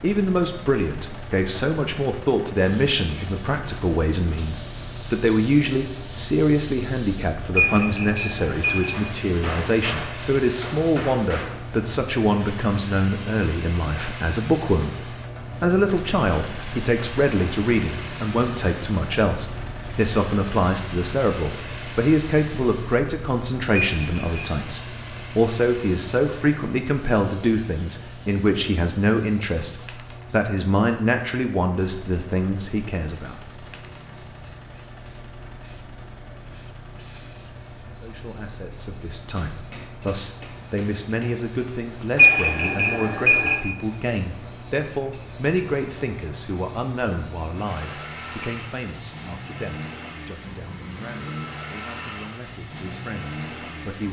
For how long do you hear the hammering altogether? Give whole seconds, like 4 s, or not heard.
5 s.